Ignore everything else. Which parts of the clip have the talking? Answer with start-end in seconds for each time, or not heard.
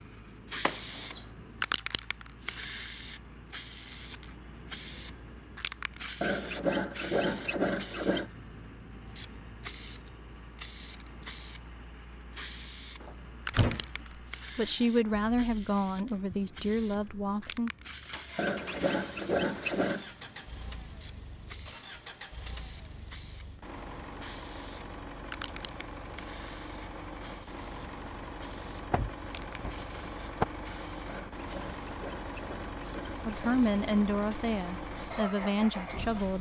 14.6-17.7, 33.2-36.3.